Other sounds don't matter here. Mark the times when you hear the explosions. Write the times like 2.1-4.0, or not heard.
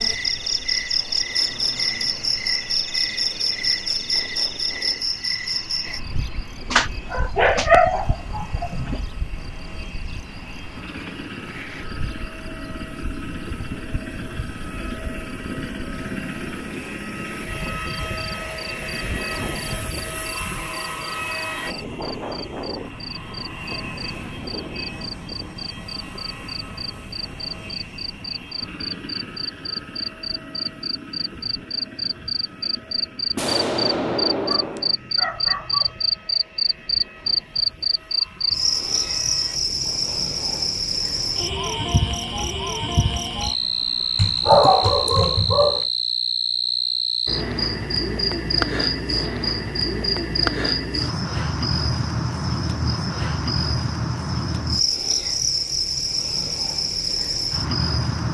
33.4-35.0.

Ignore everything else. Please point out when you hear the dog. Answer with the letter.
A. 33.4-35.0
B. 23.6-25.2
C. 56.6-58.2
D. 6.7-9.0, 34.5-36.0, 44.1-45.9
D.